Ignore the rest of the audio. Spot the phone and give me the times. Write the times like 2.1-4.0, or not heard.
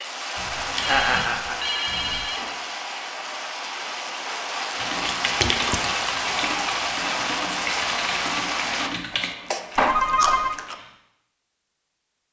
0.8-2.8, 9.8-10.6.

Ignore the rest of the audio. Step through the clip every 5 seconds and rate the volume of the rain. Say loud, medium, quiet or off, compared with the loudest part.
loud, loud, off.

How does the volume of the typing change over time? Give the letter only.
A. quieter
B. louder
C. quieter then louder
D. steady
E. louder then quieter
A.